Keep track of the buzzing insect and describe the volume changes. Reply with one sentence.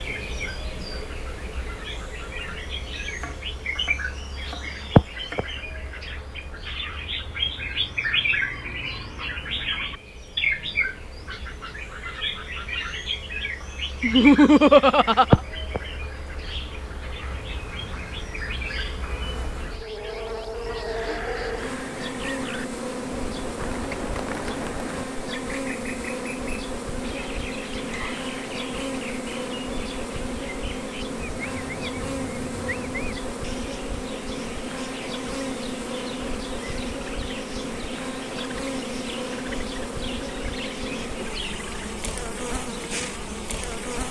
The volume of the buzzing insect goes up.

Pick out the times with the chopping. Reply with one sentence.
The chopping can be heard from 3.1 to 5.4 s.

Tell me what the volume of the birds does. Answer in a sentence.
The volume of the birds goes down.